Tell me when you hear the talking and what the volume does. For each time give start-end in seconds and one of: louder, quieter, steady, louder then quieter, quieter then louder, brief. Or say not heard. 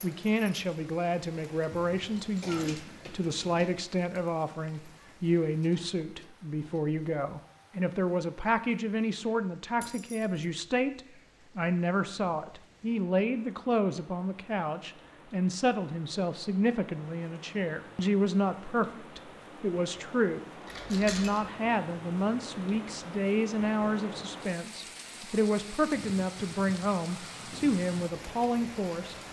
0.0-29.1 steady.